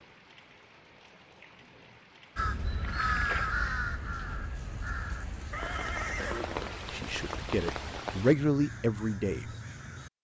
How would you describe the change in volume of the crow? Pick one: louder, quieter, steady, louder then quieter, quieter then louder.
quieter then louder.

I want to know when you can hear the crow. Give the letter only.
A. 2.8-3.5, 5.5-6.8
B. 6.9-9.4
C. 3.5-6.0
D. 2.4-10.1
D.